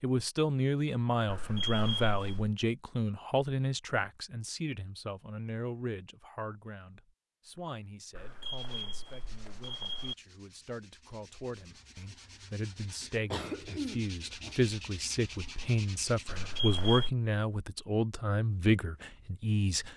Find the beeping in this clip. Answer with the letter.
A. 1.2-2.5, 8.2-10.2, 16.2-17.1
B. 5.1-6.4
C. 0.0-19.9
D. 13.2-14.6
A.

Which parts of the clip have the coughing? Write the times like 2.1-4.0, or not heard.
13.2-14.6.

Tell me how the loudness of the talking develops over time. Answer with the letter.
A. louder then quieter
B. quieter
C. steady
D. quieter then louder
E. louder
D.